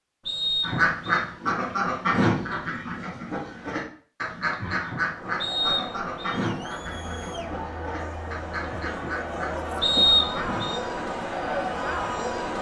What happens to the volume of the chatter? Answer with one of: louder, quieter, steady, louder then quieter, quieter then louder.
louder.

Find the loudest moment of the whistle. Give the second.
10 s.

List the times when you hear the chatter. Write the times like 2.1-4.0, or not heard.
5.0-12.5.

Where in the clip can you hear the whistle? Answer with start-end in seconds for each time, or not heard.
0.2-1.2, 5.4-6.3, 9.8-10.8.